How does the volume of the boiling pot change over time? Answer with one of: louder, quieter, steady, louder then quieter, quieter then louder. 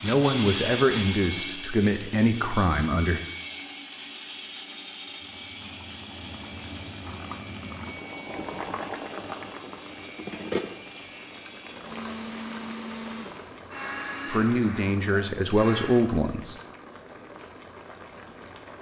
louder then quieter.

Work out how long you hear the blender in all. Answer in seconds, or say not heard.
16 s.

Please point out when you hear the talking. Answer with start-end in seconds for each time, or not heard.
0.0-3.2, 14.3-16.6.